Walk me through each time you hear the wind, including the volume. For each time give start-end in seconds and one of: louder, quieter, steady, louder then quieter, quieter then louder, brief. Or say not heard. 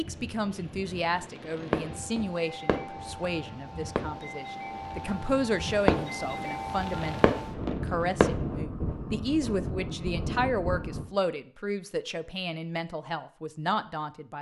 0.0-11.1 louder.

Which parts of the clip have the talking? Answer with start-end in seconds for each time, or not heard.
0.0-14.3.